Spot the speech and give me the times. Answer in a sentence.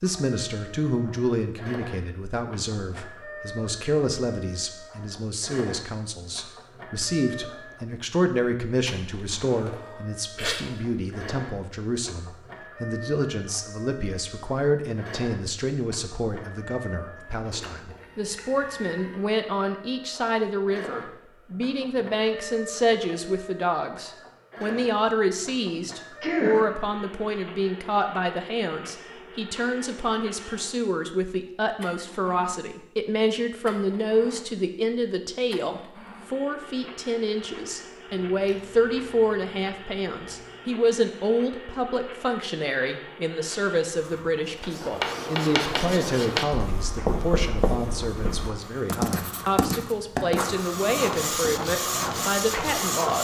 The speech can be heard from 0.0 to 53.2 s.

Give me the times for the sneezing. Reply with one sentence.
The sneezing can be heard from 9.6 to 10.7 s, from 25.8 to 26.8 s and from 38.1 to 40.4 s.